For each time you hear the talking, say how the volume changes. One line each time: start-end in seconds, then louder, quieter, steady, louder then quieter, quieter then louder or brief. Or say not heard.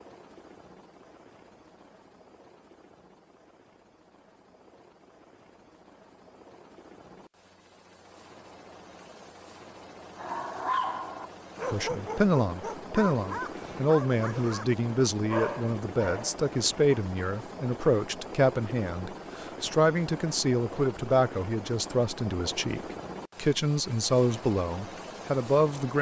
11.7-25.9 steady.